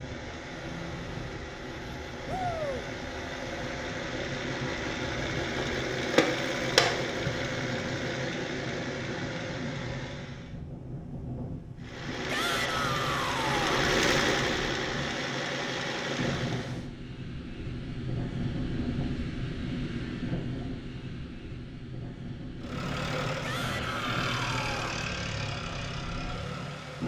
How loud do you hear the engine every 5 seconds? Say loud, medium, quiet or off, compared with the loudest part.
medium, loud, loud, loud, loud, medium.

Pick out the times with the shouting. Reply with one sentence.
The shouting can be heard from 2.2 to 2.9 s, from 12.2 to 13.9 s and from 23.4 to 24.9 s.